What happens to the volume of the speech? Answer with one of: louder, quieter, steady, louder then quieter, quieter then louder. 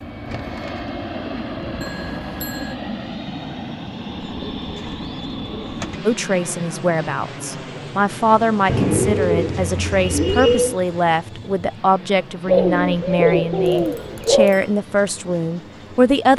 steady.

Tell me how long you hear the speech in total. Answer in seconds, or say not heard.
10 s.